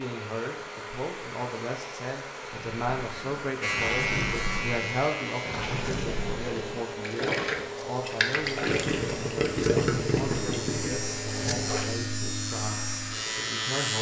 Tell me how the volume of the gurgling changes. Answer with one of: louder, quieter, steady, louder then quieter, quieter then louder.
louder.